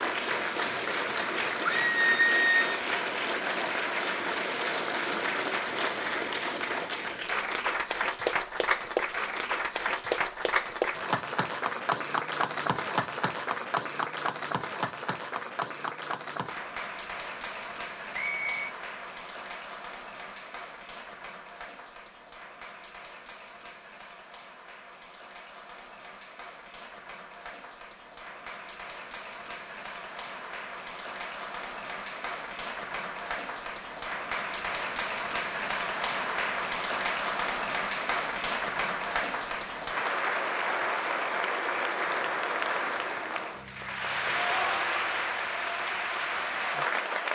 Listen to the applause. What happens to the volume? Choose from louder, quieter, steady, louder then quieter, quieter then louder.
quieter then louder.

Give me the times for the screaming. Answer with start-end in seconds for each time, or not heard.
1.6-2.8.